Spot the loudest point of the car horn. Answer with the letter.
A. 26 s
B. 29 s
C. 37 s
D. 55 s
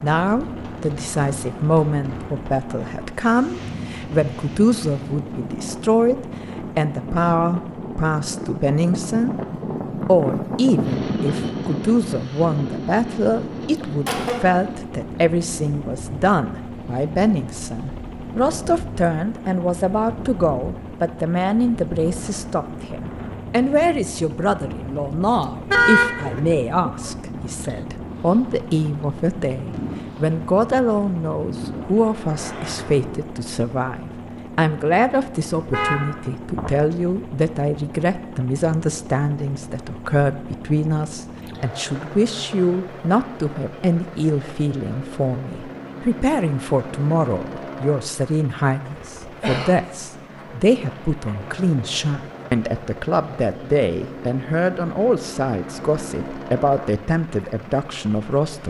A.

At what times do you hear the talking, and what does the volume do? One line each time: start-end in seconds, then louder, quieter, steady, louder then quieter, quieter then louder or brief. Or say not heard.
0.0-9.3 steady
9.9-58.6 steady.